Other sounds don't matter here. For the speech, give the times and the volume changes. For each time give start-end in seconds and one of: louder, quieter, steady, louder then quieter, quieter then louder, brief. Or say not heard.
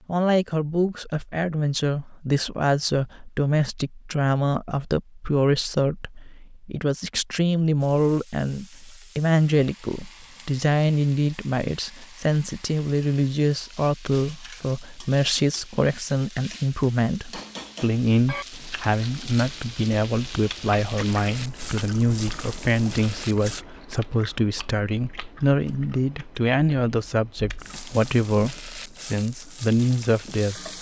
0.1-30.7 steady.